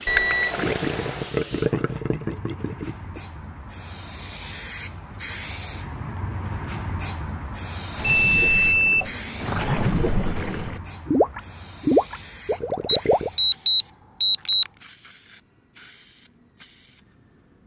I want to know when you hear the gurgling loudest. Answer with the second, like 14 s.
12 s.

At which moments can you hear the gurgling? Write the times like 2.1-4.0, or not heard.
0.0-3.2, 7.9-13.3.